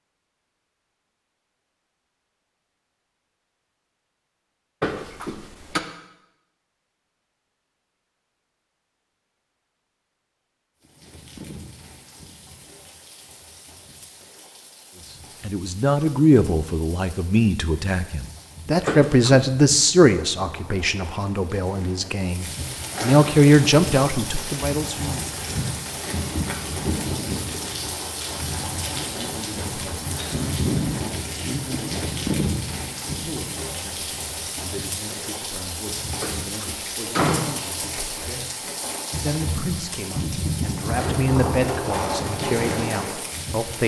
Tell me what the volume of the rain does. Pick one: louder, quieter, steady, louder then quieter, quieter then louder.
louder.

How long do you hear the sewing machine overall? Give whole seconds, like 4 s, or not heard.
not heard.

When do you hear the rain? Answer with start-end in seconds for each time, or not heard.
10.8-43.8.